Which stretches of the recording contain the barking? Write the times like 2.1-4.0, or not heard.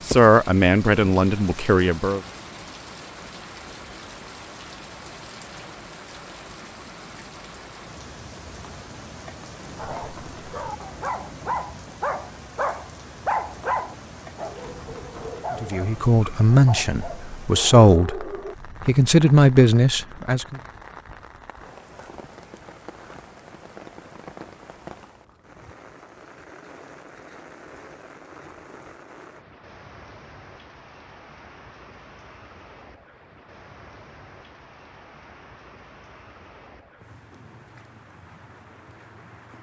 9.8-18.6.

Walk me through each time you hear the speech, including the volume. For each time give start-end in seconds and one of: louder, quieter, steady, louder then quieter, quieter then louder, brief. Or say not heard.
0.1-2.2 brief
15.6-20.6 quieter then louder.